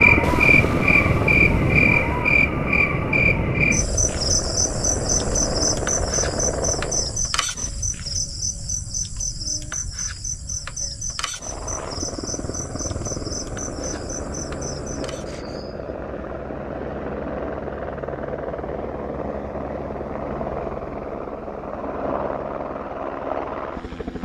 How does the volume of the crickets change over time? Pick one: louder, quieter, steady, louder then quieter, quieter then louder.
quieter.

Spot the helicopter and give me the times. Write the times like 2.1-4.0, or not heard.
0.0-7.2, 11.3-24.2.